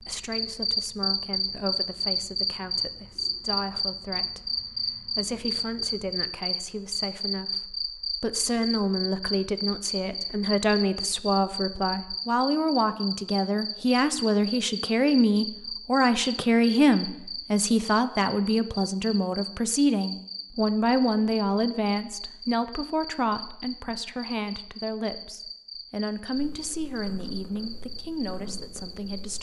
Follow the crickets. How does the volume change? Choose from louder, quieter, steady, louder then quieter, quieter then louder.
quieter.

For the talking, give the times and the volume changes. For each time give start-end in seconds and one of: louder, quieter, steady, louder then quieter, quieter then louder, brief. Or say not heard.
0.0-29.3 louder then quieter.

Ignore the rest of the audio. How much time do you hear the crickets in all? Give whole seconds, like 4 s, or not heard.
29 s.